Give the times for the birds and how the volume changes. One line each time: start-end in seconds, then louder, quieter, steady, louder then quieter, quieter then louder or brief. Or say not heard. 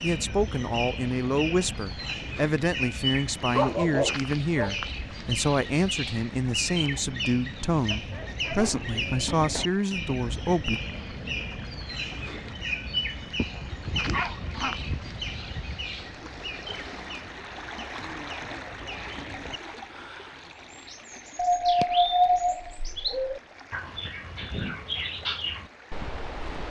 0.0-26.6 quieter then louder.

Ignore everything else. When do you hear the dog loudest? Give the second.
22 s.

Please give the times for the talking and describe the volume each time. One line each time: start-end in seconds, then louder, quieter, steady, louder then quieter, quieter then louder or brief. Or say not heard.
0.0-10.8 steady.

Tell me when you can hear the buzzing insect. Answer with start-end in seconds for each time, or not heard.
not heard.